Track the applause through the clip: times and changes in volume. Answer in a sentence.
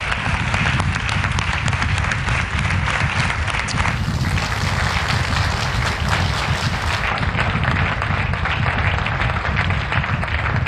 The applause can be heard from 0.0 to 10.6 s, at a steady volume.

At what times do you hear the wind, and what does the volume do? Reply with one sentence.
You can hear the wind from 0.0 to 10.6 s, at a steady volume.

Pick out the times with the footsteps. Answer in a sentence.
The footsteps can't be heard in this clip.